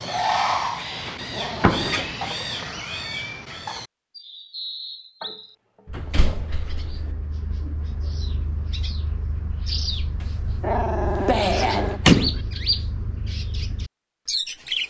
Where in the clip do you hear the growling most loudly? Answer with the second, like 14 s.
11 s.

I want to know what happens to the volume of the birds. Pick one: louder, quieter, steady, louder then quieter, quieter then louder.
quieter then louder.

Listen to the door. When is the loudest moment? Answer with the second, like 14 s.
12 s.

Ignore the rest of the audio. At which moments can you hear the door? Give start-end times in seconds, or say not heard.
1.1-2.0, 5.9-7.0, 11.2-12.4.